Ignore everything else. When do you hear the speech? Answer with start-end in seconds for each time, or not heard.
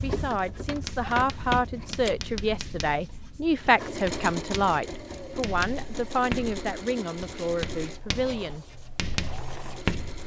0.0-8.7.